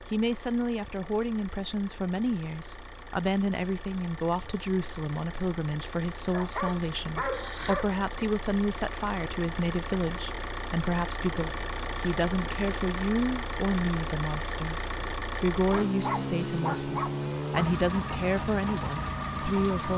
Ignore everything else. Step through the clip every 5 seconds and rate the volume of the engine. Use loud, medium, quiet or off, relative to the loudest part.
quiet, medium, loud, loud.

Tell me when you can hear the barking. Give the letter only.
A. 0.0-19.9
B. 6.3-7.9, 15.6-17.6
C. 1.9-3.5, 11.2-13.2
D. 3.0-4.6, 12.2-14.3
B.